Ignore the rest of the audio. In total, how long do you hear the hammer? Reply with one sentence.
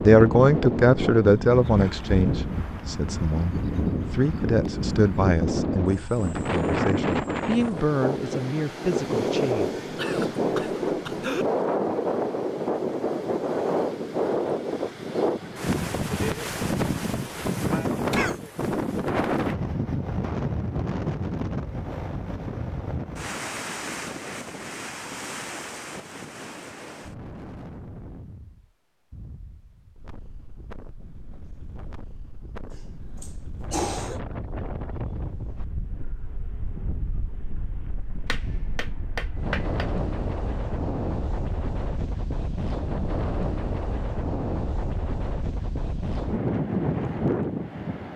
The hammer can be heard for 2 seconds in total.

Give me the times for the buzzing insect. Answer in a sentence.
You can't hear the buzzing insect here.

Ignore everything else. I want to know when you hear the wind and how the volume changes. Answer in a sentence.
The wind can be heard from 0.0 to 48.1 s, getting quieter then louder.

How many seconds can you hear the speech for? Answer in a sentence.
The speech can be heard for 10 seconds in total.